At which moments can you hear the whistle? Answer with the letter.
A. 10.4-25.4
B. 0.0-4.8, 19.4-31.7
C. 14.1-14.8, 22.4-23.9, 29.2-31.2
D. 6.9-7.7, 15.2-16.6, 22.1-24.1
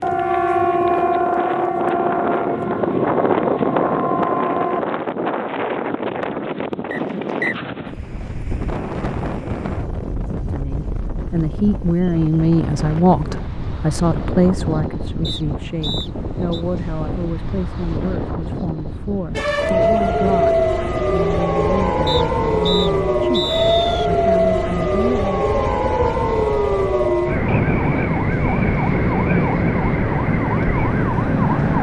D.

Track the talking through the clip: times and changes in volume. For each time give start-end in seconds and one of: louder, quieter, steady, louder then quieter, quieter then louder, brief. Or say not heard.
10.4-25.4 quieter.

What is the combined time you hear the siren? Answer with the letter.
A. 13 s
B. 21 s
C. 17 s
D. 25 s
C.